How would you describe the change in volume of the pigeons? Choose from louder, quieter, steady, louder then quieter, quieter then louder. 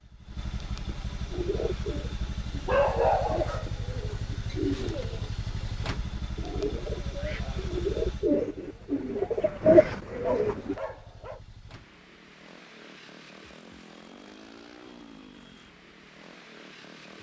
louder.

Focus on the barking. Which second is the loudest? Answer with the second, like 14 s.
3 s.